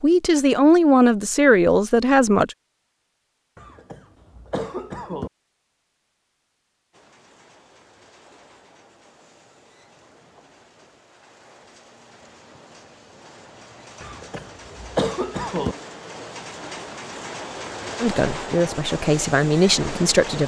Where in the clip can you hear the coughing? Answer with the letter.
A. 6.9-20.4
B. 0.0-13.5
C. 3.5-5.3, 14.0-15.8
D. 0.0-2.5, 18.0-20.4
C.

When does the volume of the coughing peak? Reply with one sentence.
The volume of the coughing peaks at 15 seconds.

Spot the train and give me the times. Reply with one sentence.
The train can be heard from 6.9 to 20.4 s.